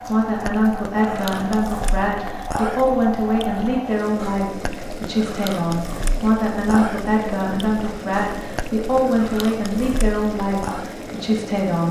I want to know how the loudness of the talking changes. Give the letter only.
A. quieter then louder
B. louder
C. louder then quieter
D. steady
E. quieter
D.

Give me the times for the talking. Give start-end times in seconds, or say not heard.
0.0-11.8.